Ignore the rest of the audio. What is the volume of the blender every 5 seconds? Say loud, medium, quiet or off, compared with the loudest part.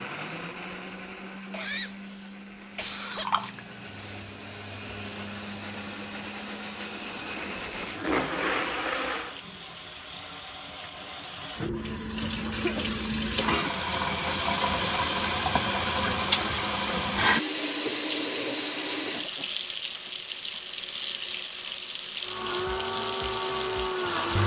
medium, loud, off, off, loud.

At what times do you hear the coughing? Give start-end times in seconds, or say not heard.
1.5-3.5, 12.5-13.6, 19.1-20.1.